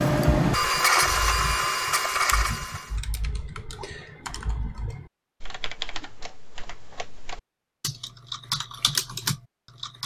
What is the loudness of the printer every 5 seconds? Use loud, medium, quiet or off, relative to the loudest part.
loud, off.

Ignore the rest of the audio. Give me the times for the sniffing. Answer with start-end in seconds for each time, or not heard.
not heard.